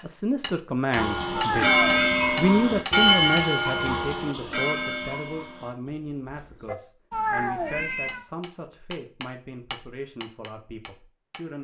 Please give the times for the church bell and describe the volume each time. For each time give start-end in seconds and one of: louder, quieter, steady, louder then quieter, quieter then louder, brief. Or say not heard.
0.9-6.8 quieter.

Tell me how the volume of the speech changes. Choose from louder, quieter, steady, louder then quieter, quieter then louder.
quieter.